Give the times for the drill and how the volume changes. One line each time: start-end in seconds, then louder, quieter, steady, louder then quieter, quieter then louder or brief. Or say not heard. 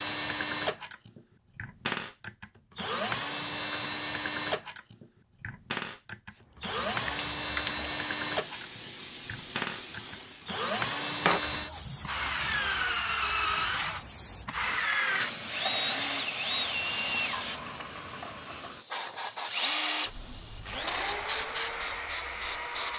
0.0-22.9 steady.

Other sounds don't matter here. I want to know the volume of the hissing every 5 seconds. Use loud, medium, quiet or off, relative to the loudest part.
off, medium, loud, loud, loud.